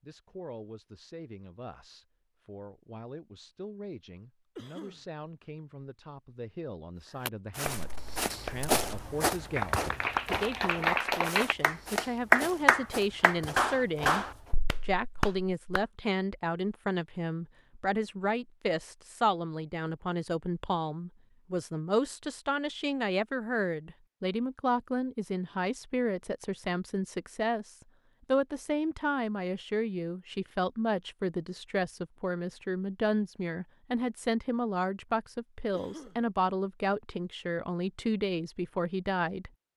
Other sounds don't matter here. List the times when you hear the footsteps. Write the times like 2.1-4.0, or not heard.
7.5-14.6.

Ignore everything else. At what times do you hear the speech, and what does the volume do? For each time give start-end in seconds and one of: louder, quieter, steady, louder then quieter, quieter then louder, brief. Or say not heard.
0.0-39.5 louder.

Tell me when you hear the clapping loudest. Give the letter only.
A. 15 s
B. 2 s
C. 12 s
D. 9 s
C.